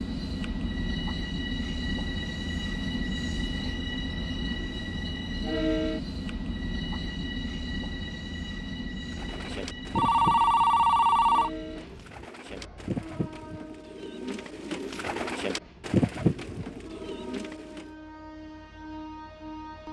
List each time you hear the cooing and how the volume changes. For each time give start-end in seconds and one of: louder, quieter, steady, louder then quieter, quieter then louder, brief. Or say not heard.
9.1-17.9 quieter then louder.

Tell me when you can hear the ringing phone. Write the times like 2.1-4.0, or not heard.
9.9-11.5.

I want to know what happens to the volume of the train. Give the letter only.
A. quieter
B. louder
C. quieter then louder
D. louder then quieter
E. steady
A.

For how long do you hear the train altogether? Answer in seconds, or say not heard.
20 s.